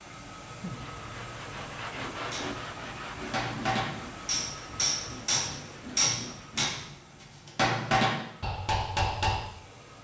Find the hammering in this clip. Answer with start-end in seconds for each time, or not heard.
2.3-9.4.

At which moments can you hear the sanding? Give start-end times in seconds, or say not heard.
0.6-6.8.